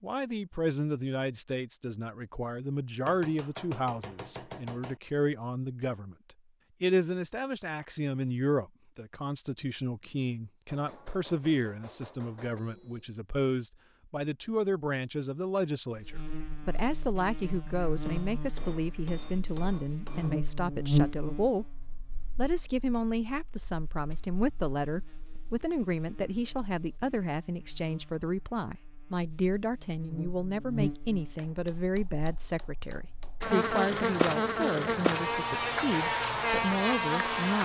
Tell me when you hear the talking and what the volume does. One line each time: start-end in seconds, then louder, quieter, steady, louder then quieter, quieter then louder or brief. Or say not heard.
0.0-37.6 steady.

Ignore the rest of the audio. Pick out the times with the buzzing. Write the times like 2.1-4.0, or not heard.
15.9-37.6.